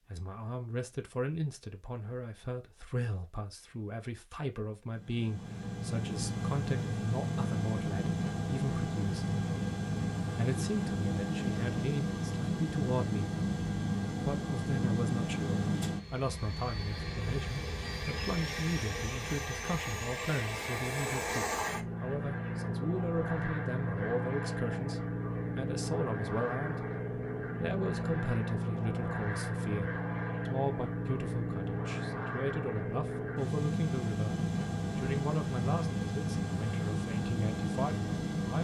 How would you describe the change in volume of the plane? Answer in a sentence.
The volume of the plane stays about the same.